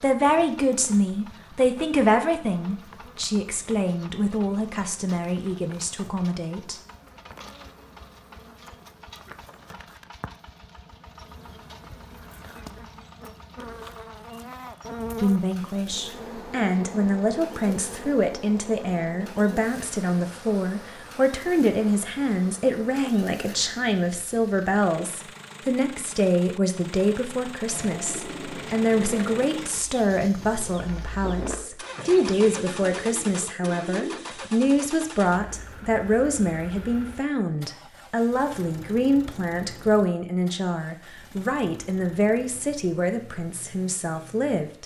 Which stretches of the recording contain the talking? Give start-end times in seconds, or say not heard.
0.0-6.8, 15.2-44.8.